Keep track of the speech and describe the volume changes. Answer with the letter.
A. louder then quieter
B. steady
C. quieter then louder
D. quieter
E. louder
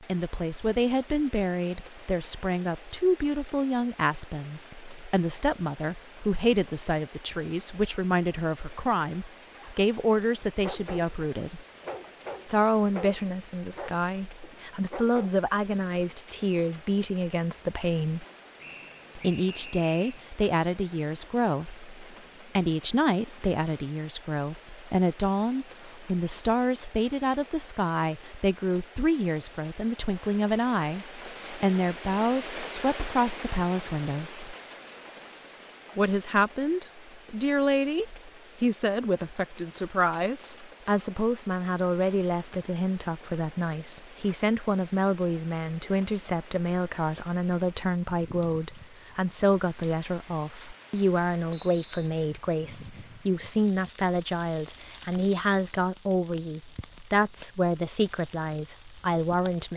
B.